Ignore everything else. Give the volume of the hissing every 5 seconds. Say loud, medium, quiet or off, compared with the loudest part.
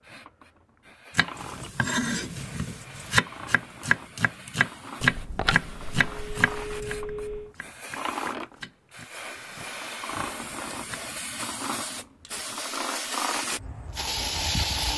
quiet, medium, loud.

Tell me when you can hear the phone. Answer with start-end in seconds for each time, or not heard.
5.0-7.5.